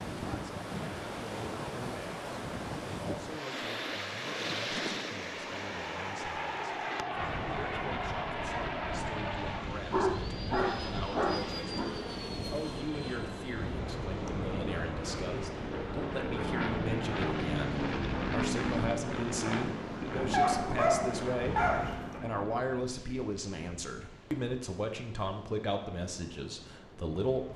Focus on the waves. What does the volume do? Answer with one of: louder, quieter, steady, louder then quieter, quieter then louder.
quieter.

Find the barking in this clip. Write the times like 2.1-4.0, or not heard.
9.9-11.8, 20.3-22.2.